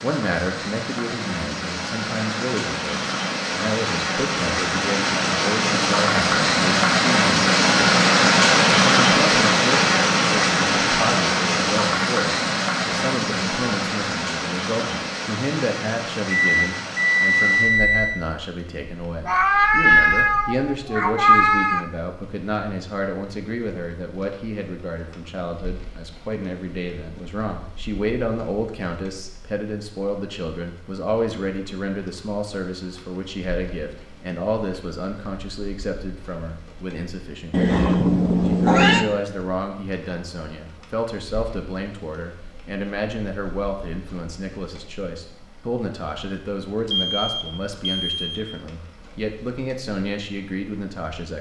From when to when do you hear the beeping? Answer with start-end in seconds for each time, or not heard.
16.3-18.2, 46.9-48.4.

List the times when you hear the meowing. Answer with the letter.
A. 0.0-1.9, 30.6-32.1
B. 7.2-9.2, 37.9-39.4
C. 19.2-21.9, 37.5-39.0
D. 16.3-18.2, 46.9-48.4
C.